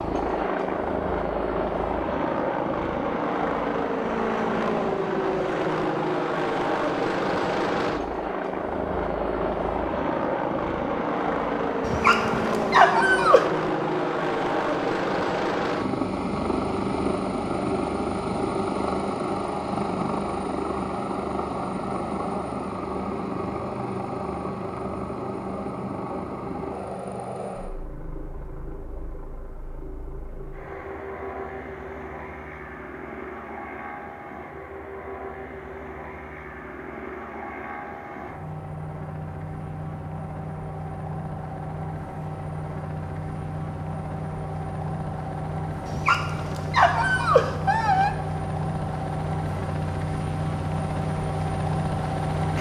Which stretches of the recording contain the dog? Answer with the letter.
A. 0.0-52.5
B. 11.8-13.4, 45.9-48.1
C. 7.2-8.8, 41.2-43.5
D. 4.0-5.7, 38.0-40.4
B.